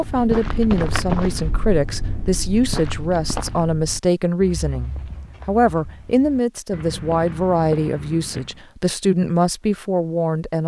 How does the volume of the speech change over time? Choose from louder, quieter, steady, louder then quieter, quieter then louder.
steady.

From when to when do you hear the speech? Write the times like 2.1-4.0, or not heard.
0.0-10.6.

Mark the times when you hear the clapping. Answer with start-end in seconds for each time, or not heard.
not heard.